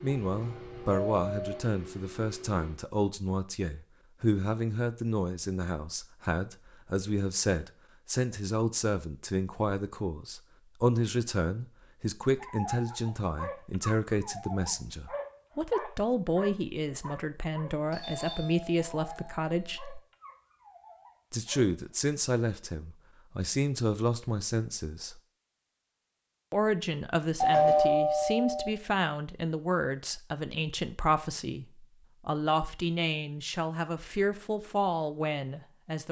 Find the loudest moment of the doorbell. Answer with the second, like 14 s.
28 s.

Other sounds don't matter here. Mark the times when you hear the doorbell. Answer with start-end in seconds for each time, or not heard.
0.2-1.6, 17.9-19.9, 27.4-28.7.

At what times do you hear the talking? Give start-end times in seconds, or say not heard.
0.0-20.0, 21.3-25.2, 26.5-36.0.